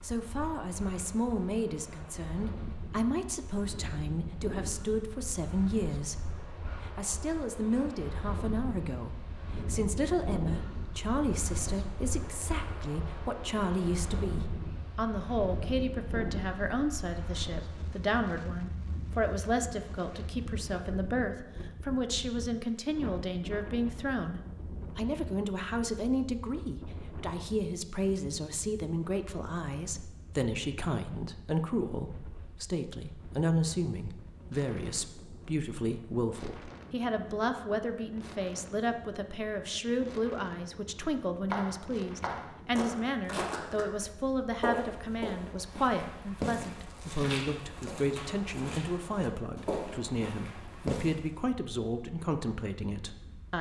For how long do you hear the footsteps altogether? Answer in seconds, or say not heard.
10 s.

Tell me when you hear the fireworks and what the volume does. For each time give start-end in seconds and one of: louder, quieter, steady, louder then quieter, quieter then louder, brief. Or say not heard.
not heard.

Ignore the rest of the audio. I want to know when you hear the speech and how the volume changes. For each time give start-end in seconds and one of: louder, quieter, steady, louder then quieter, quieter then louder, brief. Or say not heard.
0.0-53.5 steady.